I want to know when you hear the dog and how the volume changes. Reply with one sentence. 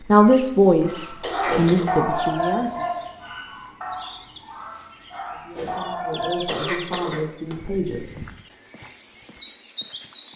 You can hear the dog from 0.8 to 6.7 s, getting quieter then louder.